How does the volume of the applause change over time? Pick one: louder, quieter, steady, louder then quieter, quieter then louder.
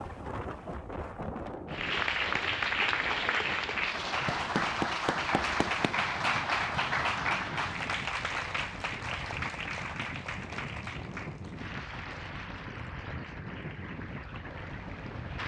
quieter.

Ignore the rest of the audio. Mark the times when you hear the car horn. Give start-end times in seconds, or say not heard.
not heard.